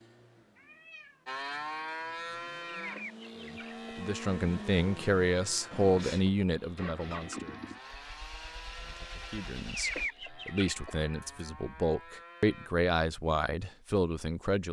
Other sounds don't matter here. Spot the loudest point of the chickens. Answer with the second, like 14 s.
10 s.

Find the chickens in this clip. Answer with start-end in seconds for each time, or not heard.
2.6-3.9, 9.7-10.9.